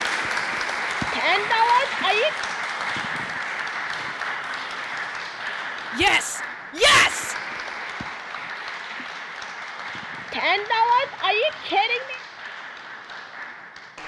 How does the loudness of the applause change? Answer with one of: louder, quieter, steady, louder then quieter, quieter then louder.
quieter.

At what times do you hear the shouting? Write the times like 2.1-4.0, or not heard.
1.1-2.3, 5.9-7.3, 10.3-12.2.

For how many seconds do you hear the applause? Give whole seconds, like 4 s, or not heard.
14 s.